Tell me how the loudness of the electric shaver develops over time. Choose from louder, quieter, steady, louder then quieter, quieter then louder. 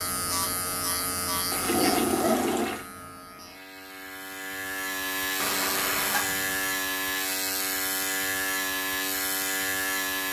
quieter then louder.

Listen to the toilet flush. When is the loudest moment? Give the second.
2 s.